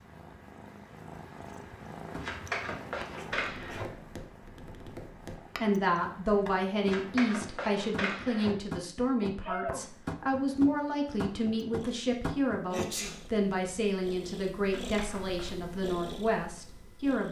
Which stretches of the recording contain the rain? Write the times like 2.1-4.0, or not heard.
not heard.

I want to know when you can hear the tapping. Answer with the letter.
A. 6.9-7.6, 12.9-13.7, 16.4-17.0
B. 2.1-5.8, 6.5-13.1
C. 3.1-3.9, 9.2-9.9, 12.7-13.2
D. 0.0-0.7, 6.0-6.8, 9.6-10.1
B.